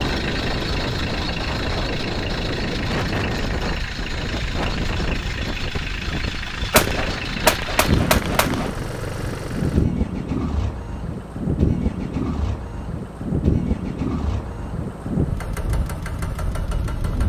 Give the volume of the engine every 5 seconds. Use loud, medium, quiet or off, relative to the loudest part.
loud, loud, medium, loud.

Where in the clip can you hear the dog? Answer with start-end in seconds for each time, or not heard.
not heard.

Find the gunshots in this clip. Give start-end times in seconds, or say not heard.
6.7-8.7.